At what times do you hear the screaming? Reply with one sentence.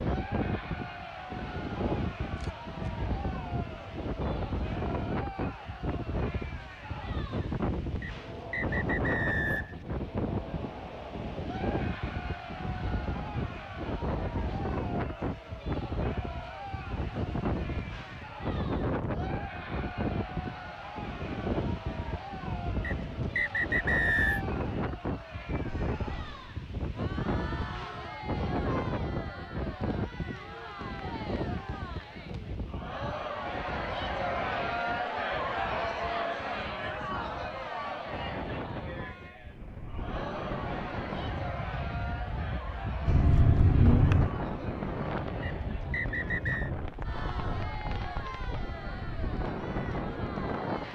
You can't hear the screaming here.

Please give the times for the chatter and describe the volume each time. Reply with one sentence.
The chatter can be heard from 0.0 to 50.9 s, getting louder then quieter.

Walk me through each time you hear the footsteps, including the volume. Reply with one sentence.
The footsteps can't be heard in this clip.